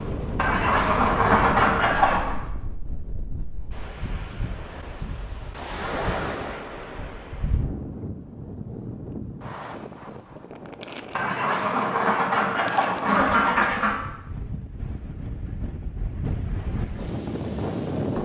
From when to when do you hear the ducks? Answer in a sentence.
The ducks can be heard from 0.3 to 2.4 s and from 11.2 to 14.0 s.